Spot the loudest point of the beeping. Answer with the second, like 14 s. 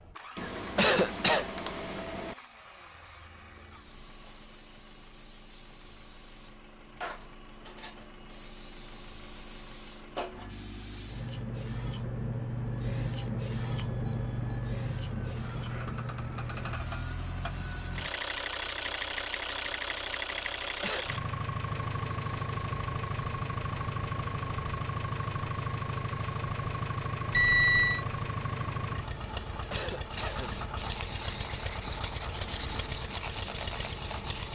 28 s.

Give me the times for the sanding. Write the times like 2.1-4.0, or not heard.
30.1-34.5.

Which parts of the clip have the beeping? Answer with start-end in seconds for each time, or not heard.
0.3-2.4, 13.2-14.6, 27.3-28.1.